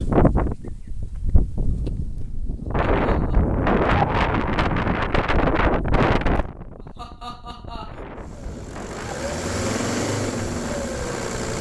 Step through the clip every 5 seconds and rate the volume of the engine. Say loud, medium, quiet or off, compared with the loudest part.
off, loud, loud.